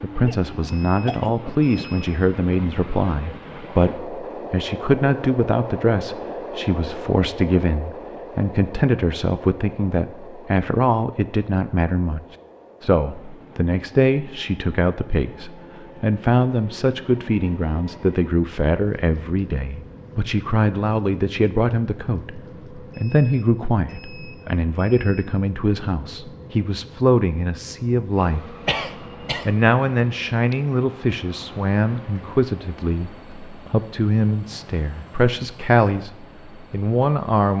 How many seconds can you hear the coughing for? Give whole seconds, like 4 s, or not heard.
2 s.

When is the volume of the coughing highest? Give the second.
29 s.